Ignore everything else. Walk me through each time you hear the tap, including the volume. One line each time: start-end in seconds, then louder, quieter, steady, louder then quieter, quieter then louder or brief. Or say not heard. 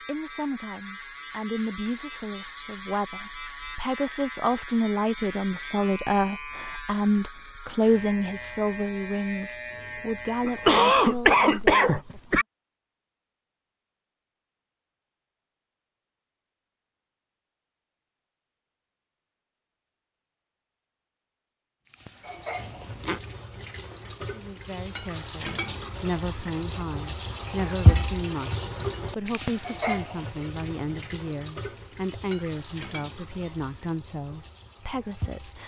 21.9-35.6 louder then quieter.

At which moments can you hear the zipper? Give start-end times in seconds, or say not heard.
22.6-23.2.